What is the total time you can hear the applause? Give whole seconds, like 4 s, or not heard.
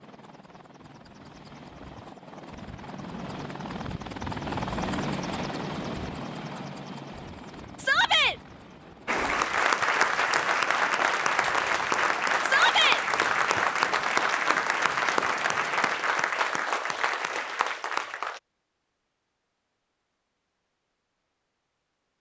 9 s.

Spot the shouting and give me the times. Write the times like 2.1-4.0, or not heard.
7.8-8.3, 12.4-13.0.